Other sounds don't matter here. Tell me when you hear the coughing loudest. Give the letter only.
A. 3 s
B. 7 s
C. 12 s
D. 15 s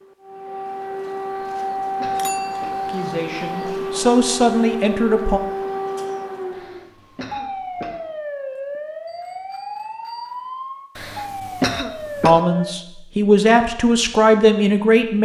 C.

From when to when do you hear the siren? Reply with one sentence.
You can hear the siren from 0.0 to 12.8 s.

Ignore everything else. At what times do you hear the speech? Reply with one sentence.
The speech can be heard from 2.9 to 5.4 s and from 12.2 to 15.2 s.